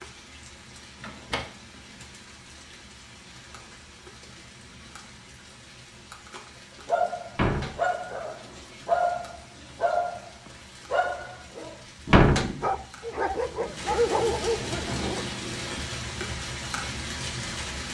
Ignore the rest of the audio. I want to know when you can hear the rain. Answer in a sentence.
The rain can be heard from 0.0 to 17.8 s.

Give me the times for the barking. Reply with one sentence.
The barking can be heard from 6.8 to 15.2 s.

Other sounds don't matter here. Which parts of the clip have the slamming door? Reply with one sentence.
You can hear the slamming door from 1.0 to 1.4 s, from 7.3 to 7.8 s and from 12.1 to 12.5 s.